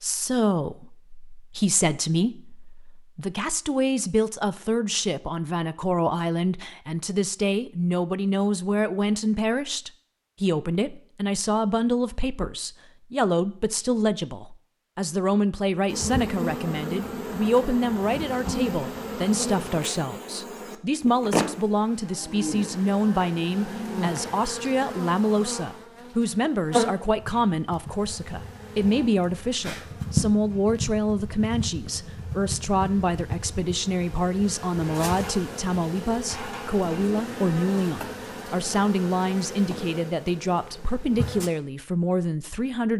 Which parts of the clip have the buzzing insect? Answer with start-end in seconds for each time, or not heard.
15.8-41.5.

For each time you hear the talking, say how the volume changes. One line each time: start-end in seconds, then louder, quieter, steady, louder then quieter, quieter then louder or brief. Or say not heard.
0.0-42.9 steady.